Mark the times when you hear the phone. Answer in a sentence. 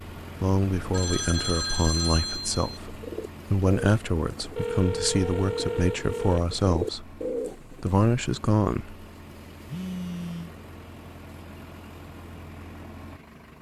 The phone can be heard from 0.9 to 2.8 s, from 4.5 to 6.5 s and from 9.7 to 10.5 s.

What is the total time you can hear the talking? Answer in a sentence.
You can hear the talking for 9 seconds altogether.